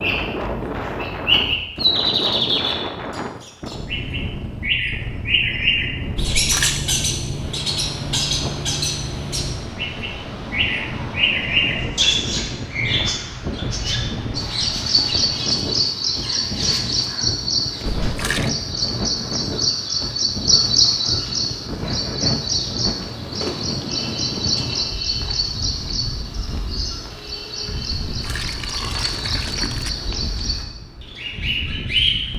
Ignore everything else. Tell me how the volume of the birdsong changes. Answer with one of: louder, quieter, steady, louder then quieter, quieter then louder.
quieter.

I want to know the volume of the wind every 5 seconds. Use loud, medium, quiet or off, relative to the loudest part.
loud, loud, loud, loud, loud, medium, medium.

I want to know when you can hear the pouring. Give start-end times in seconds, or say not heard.
6.2-6.8, 18.0-18.5, 28.1-29.9.